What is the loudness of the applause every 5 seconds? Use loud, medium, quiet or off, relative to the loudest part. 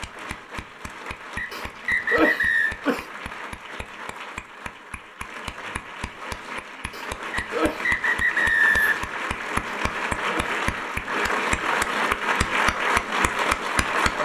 quiet, medium, loud.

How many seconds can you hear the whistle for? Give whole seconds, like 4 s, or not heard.
3 s.